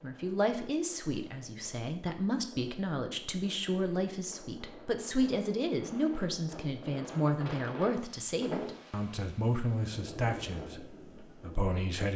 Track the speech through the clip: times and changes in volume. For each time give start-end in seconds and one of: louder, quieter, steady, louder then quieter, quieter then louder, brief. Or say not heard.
0.0-12.1 steady.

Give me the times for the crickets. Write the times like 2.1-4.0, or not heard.
not heard.